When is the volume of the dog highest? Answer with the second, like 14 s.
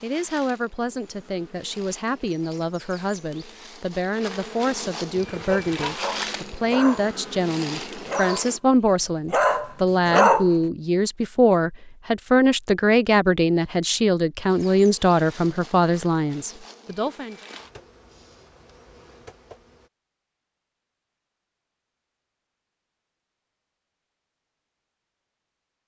10 s.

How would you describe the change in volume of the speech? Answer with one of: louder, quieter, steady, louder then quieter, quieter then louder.
louder.